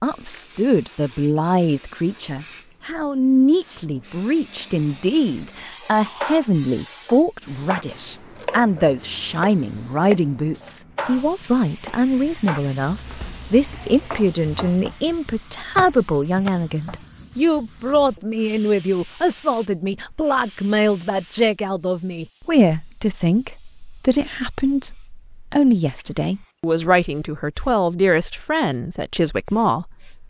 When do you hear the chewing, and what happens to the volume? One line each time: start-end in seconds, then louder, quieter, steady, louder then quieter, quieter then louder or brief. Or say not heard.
not heard.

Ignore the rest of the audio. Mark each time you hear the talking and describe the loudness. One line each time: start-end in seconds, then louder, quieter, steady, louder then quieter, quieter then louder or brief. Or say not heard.
0.0-30.2 steady.